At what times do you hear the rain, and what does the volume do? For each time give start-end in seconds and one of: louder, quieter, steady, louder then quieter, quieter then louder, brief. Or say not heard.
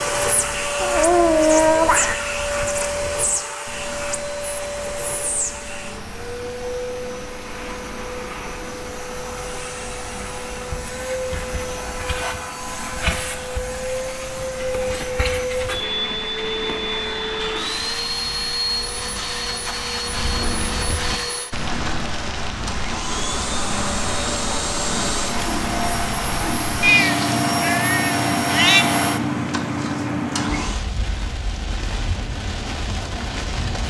0.0-33.8 louder.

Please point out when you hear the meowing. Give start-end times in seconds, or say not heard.
0.8-2.2, 26.8-28.9.